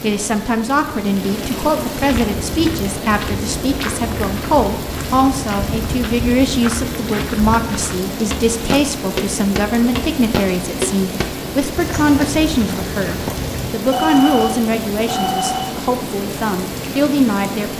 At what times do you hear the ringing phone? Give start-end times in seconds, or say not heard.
13.9-15.8.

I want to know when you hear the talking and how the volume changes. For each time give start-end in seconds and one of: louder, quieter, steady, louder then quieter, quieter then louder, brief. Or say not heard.
0.0-17.7 steady.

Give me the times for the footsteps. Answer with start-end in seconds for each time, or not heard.
2.0-13.7.